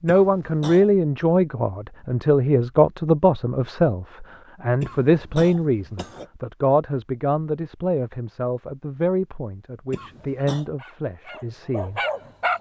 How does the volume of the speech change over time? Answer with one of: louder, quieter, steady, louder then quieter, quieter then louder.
quieter.